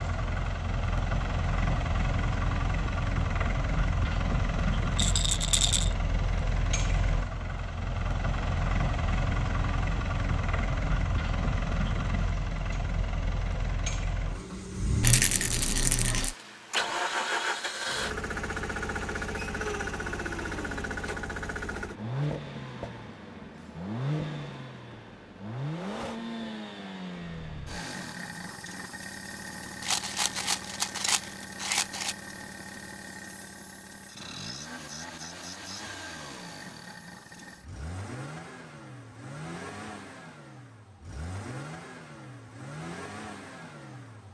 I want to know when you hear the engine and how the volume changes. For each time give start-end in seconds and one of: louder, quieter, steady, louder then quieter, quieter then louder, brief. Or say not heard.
0.0-44.2 quieter.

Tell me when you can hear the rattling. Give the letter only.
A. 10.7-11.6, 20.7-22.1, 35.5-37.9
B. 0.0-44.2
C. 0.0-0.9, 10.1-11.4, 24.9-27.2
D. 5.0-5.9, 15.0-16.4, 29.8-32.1
D.